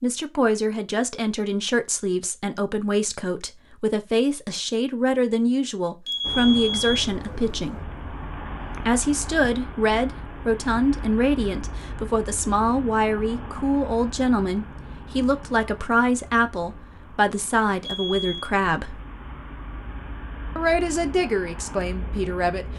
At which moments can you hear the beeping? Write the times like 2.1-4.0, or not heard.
6.0-6.9, 17.8-18.5.